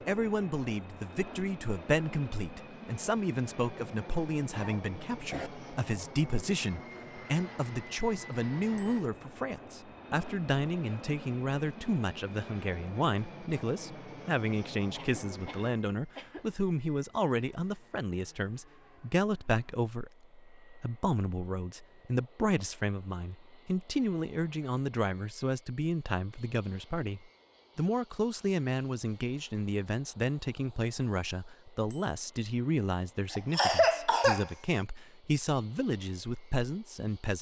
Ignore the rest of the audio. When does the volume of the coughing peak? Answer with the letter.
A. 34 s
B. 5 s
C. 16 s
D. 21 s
A.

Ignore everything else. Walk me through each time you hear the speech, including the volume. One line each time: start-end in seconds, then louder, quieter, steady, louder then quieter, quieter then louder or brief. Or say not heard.
0.1-37.3 steady.